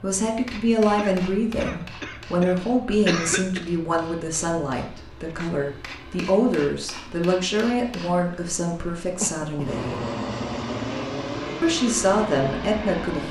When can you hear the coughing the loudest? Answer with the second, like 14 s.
3 s.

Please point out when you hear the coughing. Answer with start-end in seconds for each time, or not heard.
0.9-3.6, 9.2-9.8.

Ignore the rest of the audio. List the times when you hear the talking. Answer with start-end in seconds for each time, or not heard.
0.0-10.0, 11.6-13.2.